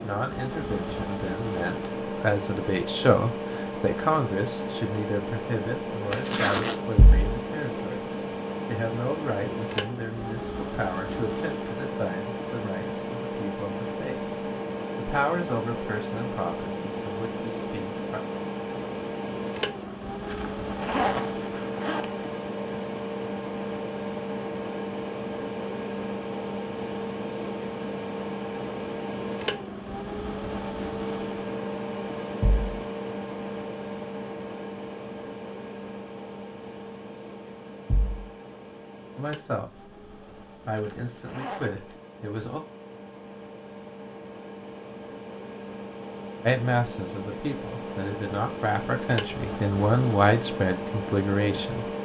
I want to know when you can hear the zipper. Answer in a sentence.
You can hear the zipper from 6.1 to 6.8 s, from 19.8 to 22.2 s and from 40.2 to 42.0 s.